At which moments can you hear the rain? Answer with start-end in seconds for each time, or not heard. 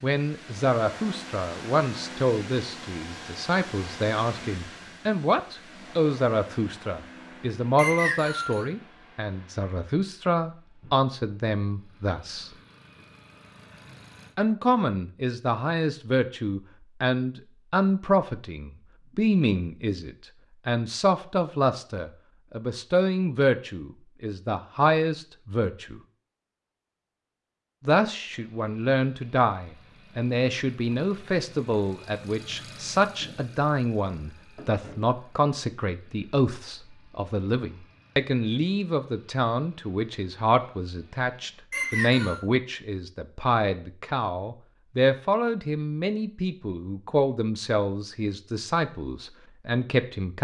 not heard.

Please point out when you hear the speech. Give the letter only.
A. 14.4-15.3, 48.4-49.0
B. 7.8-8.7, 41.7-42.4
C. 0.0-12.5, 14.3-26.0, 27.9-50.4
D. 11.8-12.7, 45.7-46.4
C.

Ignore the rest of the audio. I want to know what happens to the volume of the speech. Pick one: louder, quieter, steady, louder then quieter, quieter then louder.
steady.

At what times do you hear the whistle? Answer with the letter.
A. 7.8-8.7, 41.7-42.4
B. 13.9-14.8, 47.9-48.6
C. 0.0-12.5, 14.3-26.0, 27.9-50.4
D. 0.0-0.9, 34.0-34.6
A.